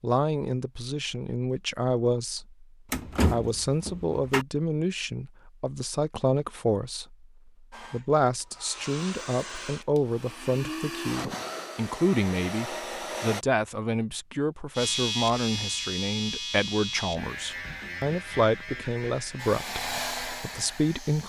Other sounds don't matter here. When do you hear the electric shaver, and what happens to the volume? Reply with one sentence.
The electric shaver can be heard from 14.8 to 21.2 s, getting quieter.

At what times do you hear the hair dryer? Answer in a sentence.
You can hear the hair dryer from 7.7 to 13.4 s and from 19.4 to 21.2 s.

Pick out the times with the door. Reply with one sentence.
You can hear the door from 2.9 to 4.5 s.